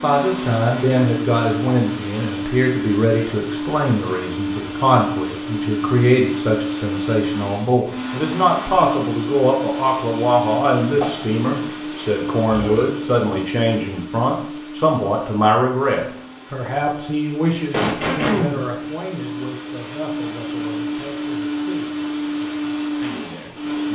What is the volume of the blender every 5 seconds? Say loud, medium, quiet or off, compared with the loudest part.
loud, loud, loud, medium, loud.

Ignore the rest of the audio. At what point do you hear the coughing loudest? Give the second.
18 s.